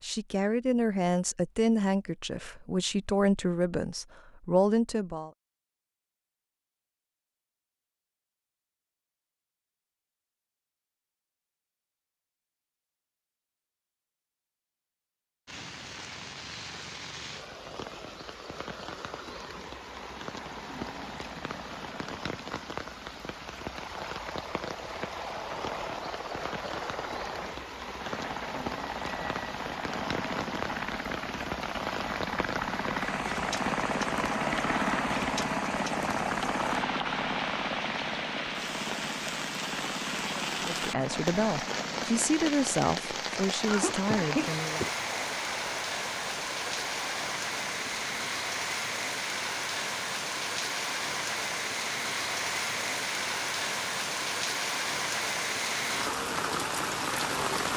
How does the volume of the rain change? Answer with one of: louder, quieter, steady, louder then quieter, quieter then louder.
louder.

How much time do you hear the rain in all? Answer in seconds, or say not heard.
42 s.